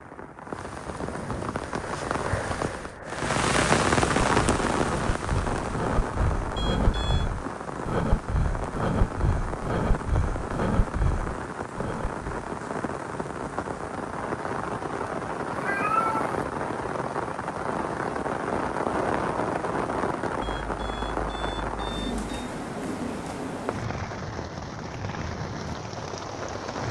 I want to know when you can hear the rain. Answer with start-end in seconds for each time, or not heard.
0.0-26.8.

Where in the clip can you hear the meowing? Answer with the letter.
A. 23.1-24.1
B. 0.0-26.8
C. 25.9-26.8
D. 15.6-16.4
D.